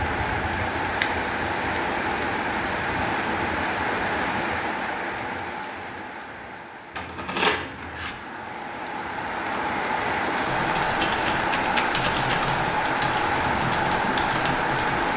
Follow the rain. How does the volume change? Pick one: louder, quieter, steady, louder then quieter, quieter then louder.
quieter then louder.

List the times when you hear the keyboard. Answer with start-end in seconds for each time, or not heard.
10.4-15.1.